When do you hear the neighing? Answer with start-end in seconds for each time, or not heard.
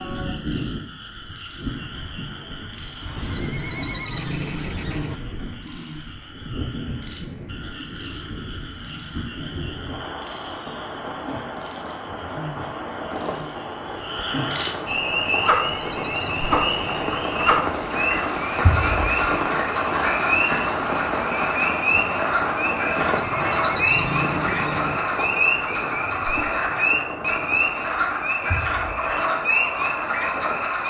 3.1-5.2, 15.4-17.2, 22.9-25.0.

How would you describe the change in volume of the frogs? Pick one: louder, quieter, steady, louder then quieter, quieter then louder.
louder.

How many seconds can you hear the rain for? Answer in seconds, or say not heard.
31 s.